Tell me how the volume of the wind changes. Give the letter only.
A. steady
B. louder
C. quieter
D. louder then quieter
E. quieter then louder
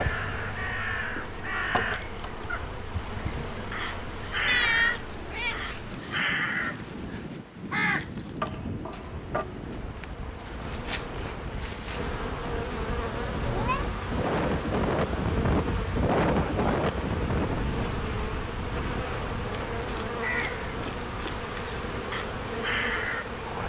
D.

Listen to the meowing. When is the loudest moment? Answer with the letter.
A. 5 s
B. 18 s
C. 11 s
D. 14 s
A.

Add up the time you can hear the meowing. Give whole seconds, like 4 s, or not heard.
2 s.